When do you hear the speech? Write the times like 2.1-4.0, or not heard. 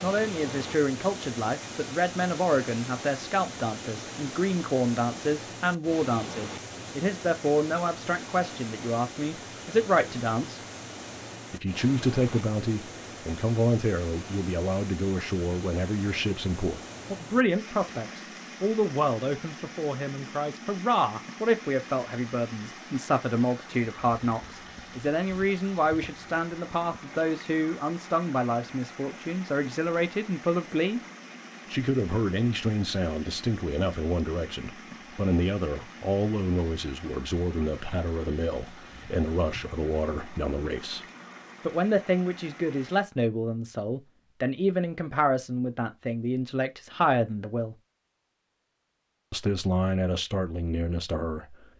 0.0-10.6, 11.5-31.0, 31.7-41.0, 41.6-47.8, 49.3-51.7.